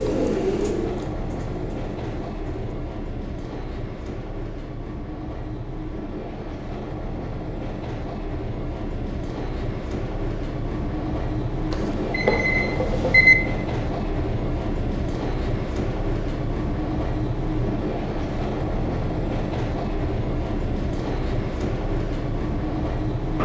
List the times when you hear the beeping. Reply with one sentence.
You can hear the beeping from 11.7 to 13.3 s.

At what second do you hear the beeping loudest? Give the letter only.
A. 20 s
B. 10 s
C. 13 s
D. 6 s
C.